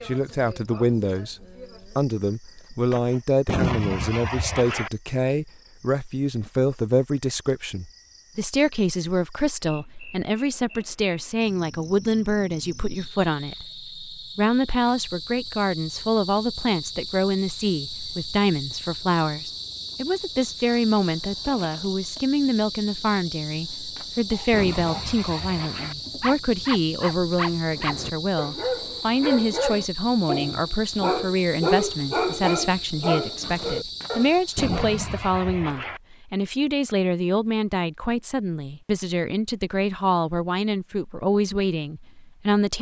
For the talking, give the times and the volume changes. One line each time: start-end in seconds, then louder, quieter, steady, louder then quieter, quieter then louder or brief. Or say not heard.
0.0-42.7 steady.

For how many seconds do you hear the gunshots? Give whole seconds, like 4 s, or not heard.
6 s.